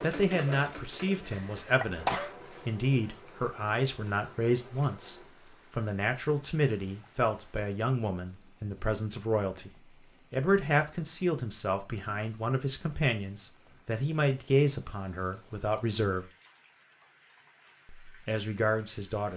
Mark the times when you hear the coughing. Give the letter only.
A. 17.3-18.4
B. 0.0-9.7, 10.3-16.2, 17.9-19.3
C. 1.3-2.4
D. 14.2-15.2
C.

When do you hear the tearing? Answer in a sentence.
The tearing can't be heard in this clip.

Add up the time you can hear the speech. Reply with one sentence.
You can hear the speech for 17 seconds altogether.